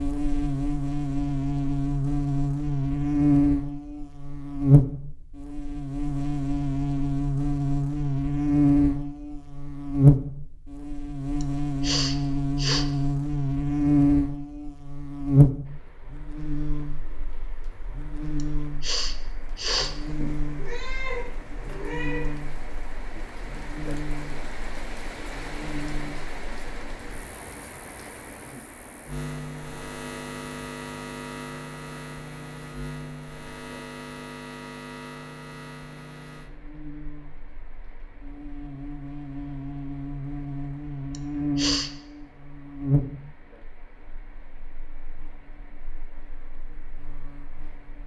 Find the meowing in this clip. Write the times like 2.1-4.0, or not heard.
19.6-22.3.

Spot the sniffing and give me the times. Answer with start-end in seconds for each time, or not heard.
11.4-12.8, 18.4-19.9, 41.1-41.9.